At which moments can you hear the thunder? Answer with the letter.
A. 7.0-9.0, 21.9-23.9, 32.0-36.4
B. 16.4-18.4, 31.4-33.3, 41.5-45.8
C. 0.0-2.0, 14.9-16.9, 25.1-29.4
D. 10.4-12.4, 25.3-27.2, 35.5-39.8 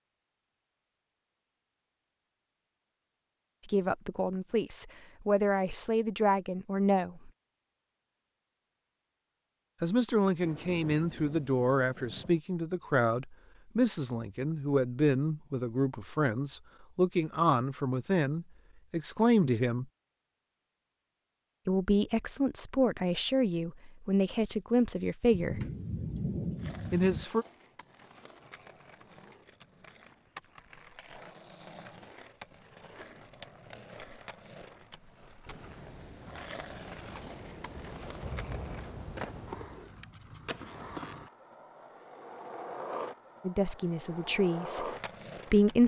D.